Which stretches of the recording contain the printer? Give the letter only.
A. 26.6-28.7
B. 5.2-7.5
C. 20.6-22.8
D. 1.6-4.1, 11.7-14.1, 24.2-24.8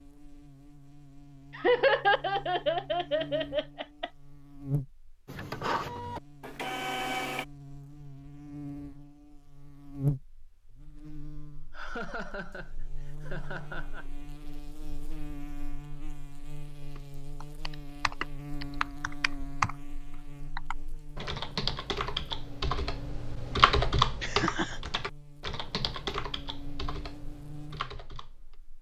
B.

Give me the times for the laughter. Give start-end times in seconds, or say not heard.
1.6-4.1, 11.7-14.1, 24.2-24.8.